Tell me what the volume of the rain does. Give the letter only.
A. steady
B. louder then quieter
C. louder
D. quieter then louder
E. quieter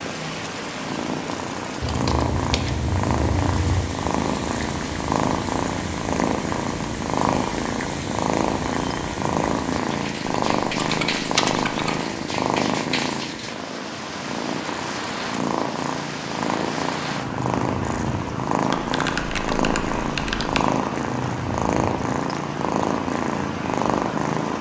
A.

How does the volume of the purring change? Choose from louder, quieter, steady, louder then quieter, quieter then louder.
steady.